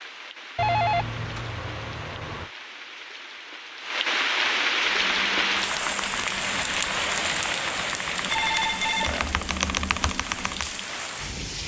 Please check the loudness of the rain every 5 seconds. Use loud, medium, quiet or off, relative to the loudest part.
loud, loud, medium.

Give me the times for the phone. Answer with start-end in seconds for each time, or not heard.
0.6-2.5, 8.3-9.3.